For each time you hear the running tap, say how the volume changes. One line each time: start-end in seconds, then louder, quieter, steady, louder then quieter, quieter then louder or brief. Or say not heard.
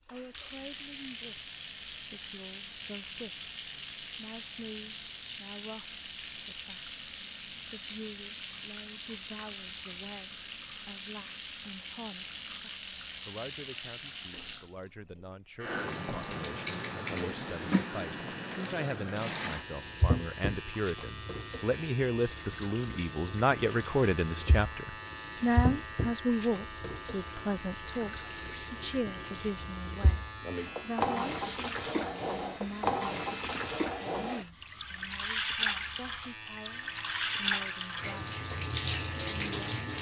0.1-14.7 steady
15.6-39.9 quieter then louder.